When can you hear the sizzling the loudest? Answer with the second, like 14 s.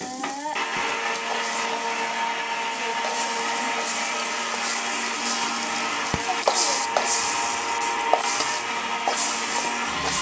7 s.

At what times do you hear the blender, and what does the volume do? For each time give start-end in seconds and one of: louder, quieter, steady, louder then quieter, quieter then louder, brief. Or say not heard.
0.0-10.1 steady.